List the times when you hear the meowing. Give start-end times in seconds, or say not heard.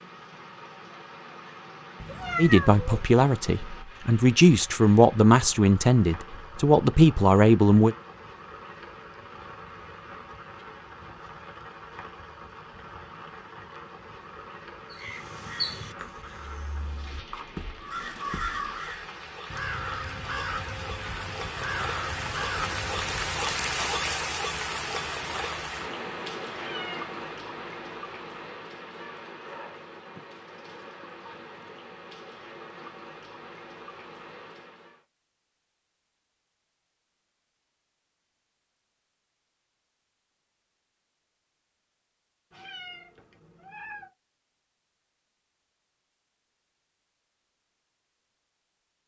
2.0-3.0, 26.6-27.1, 42.5-44.1.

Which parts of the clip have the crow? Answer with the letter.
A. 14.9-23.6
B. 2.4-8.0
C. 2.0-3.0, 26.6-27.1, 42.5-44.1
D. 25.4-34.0
A.